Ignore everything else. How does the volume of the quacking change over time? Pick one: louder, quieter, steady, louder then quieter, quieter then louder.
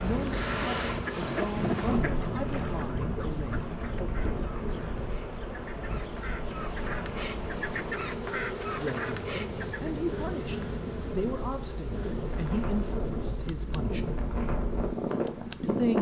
quieter then louder.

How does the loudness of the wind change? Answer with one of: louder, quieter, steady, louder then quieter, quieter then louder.
quieter then louder.